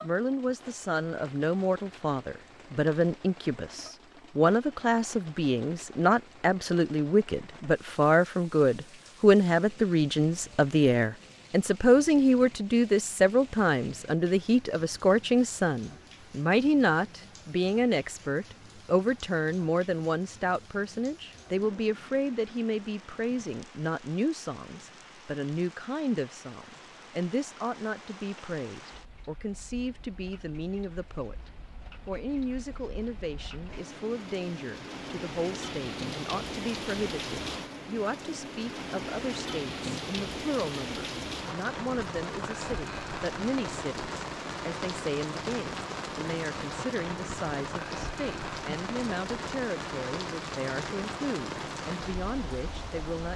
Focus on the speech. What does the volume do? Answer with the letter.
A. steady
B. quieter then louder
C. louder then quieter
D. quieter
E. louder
D.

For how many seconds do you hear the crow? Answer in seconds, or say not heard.
not heard.